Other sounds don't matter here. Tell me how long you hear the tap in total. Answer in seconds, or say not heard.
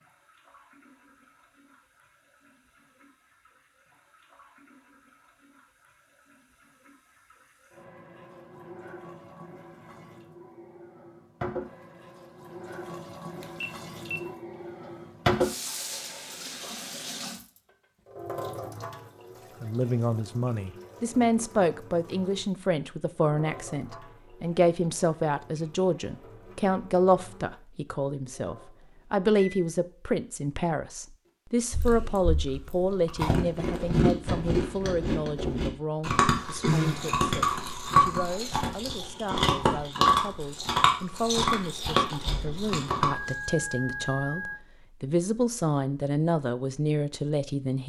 29 s.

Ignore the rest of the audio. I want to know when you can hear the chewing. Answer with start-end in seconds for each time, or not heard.
31.7-43.3.